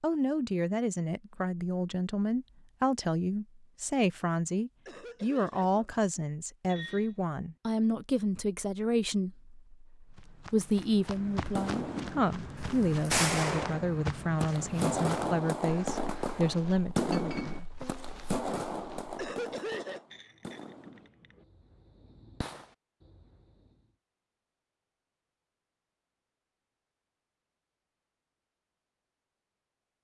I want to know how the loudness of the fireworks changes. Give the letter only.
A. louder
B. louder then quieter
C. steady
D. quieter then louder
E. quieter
E.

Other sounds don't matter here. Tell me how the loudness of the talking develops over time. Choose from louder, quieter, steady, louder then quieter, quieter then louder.
steady.